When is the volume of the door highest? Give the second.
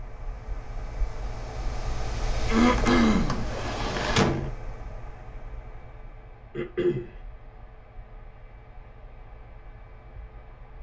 4 s.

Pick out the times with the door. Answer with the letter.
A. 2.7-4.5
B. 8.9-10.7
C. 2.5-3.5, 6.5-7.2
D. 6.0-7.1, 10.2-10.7
A.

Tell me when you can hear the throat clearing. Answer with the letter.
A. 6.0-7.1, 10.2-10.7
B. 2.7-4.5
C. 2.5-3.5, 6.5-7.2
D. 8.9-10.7
C.